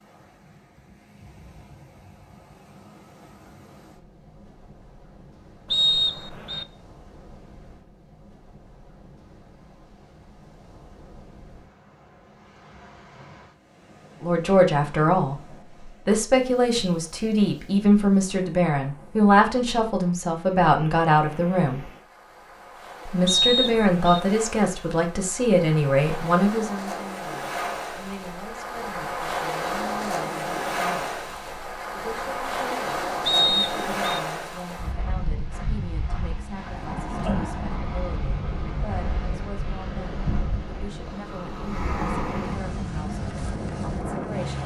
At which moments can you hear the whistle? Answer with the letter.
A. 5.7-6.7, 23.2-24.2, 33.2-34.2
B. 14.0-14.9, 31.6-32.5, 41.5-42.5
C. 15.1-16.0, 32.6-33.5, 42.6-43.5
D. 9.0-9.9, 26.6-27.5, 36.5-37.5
A.